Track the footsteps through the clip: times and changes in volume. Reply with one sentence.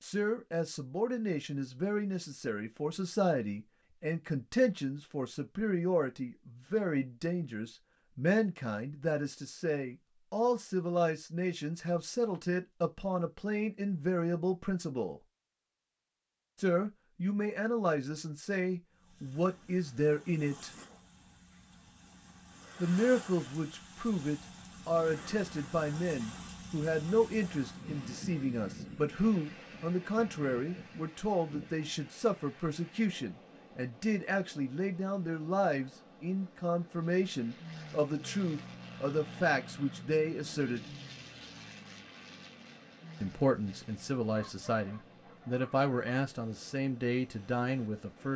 The footsteps can't be heard in this clip.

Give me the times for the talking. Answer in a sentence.
You can hear the talking from 0.0 to 15.2 s, from 16.6 to 20.7 s, from 22.8 to 40.9 s and from 43.2 to 48.3 s.